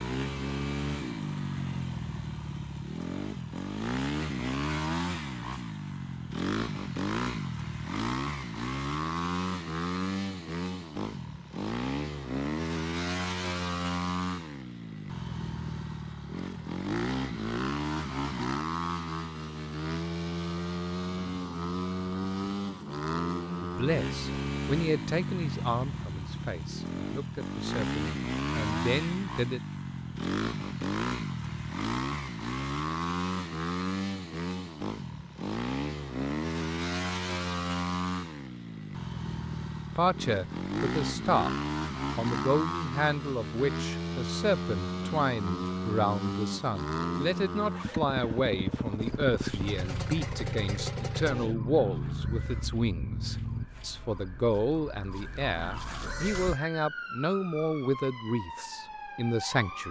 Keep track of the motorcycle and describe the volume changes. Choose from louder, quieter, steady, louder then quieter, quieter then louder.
steady.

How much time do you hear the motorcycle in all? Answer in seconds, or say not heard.
54 s.